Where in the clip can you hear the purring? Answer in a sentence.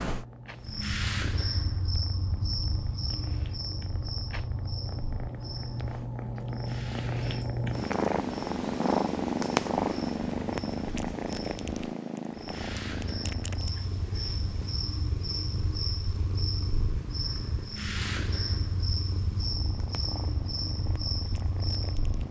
You can hear the purring from 0.0 to 22.2 s.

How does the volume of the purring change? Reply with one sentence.
The loudness of the purring goes up, then down.